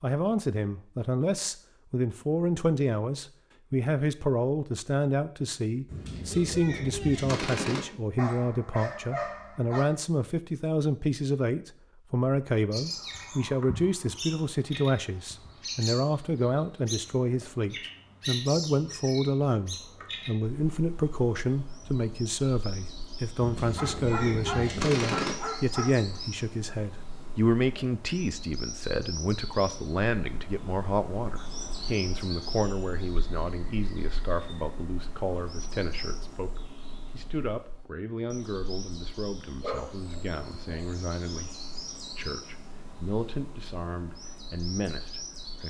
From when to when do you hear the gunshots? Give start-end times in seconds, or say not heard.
5.8-7.8, 23.4-25.4.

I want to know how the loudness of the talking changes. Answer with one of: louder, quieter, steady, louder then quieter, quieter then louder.
quieter.